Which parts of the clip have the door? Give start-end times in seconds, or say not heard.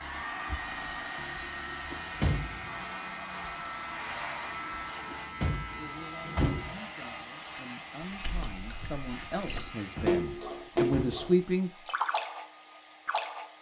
1.9-2.8, 5.1-6.8, 9.7-11.3.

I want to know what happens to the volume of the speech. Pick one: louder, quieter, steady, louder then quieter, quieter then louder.
louder.